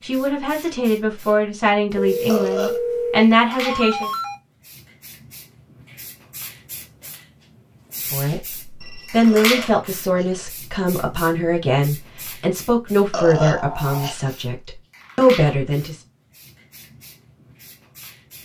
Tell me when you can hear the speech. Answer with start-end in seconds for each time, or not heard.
0.0-4.1, 8.1-16.0.